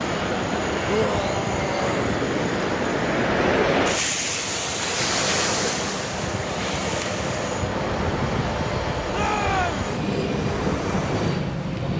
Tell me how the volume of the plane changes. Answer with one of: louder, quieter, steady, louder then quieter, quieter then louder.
quieter then louder.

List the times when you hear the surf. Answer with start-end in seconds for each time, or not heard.
0.0-11.9.